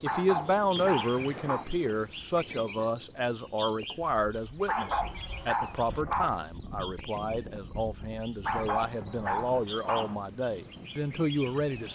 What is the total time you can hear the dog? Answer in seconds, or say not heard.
5 s.